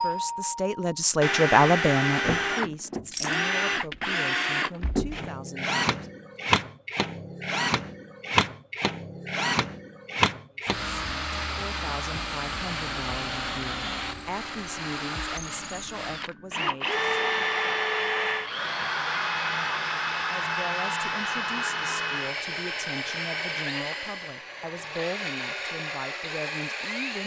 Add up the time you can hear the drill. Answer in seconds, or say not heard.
27 s.